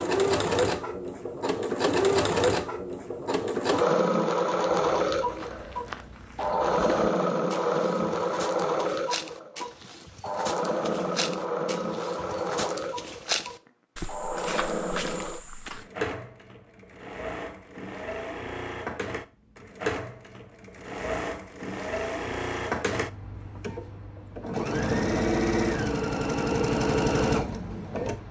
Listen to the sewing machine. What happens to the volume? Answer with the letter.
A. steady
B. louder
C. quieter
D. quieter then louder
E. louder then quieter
D.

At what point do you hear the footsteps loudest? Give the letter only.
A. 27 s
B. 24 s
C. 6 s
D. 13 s
D.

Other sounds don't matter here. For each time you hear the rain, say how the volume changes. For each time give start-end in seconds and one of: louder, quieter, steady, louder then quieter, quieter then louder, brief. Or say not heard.
not heard.